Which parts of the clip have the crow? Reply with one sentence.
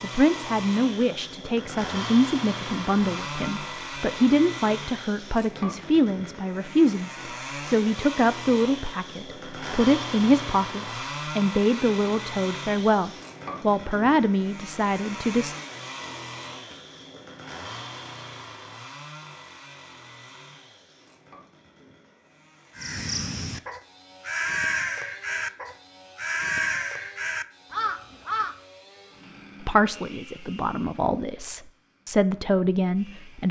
The crow can be heard from 22.8 to 28.6 s.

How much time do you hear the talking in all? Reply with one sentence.
You can hear the talking for 19 seconds altogether.